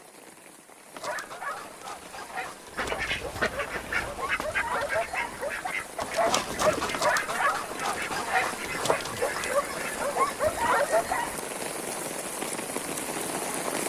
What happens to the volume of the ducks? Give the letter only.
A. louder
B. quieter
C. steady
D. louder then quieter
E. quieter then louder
B.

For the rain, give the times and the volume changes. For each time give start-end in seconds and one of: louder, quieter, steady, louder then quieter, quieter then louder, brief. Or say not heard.
0.0-13.8 louder.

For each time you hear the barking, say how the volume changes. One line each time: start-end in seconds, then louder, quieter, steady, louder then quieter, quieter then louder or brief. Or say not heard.
0.9-11.4 louder.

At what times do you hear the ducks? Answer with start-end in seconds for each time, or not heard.
2.8-9.9.